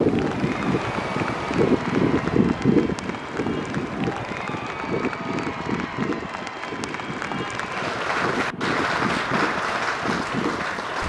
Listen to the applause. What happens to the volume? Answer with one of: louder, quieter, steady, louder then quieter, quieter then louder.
louder.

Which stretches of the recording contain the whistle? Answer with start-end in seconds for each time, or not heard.
not heard.